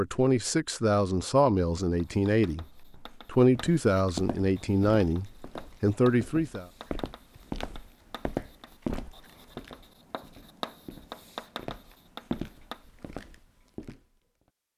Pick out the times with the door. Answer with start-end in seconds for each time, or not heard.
8.8-9.4.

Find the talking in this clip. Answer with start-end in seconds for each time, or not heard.
0.0-6.7.